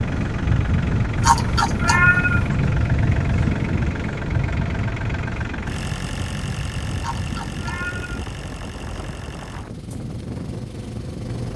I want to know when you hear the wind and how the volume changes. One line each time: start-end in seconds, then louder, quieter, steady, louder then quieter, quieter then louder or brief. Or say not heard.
0.0-11.5 quieter.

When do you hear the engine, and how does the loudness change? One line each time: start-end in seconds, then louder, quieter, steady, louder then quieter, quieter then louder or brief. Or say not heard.
0.0-11.5 quieter.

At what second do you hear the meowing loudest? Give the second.
2 s.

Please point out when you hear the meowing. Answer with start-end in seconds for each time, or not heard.
1.1-2.5, 7.0-8.2.